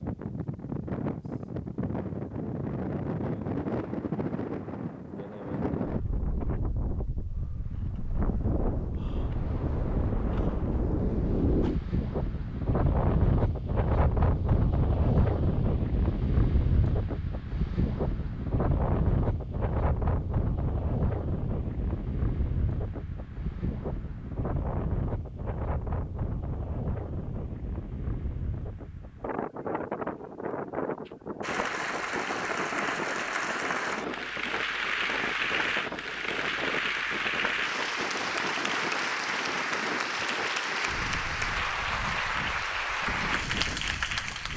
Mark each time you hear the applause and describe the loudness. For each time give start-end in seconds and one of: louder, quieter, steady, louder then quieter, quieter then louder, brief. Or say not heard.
31.4-44.5 steady.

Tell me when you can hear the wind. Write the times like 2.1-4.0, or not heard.
0.0-44.5.